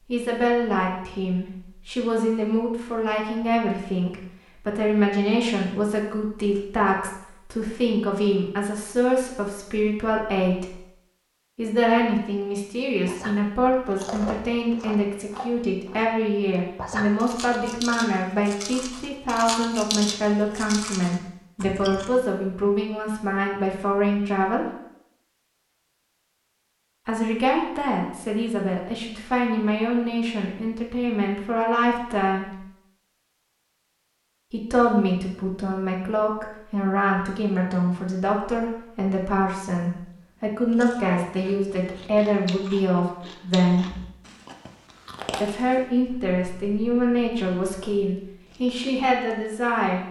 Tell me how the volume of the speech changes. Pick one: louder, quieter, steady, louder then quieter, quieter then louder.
steady.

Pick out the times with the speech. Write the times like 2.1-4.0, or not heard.
0.1-10.8, 11.6-24.6, 27.1-32.6, 34.5-43.9, 45.4-50.0.